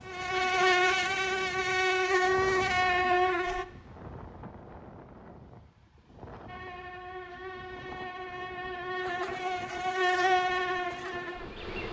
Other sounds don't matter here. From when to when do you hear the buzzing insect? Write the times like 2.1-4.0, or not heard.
0.1-3.6, 6.5-11.8.